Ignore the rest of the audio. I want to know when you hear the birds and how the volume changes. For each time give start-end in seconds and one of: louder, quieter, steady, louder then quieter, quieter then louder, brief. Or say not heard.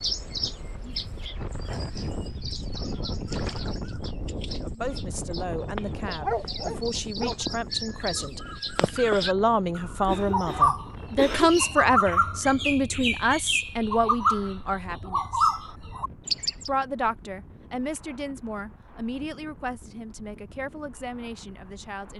0.0-16.7 louder.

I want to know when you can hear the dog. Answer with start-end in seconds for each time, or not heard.
6.0-7.3.